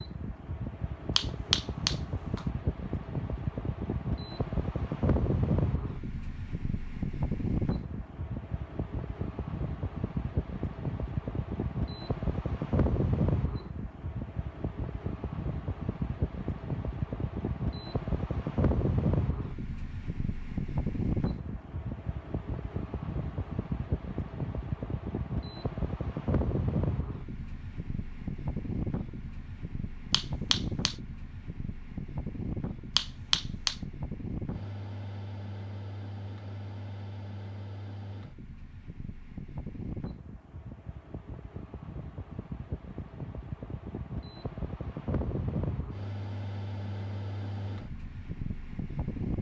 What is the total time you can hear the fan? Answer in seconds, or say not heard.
49 s.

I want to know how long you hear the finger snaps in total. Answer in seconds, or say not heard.
3 s.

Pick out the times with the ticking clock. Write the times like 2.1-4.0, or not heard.
not heard.